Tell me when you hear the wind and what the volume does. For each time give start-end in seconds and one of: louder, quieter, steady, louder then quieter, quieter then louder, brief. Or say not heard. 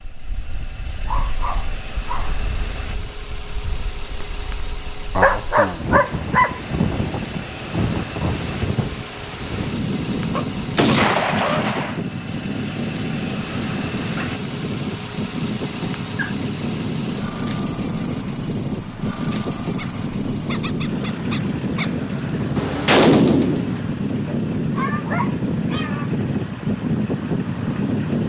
0.1-28.2 louder.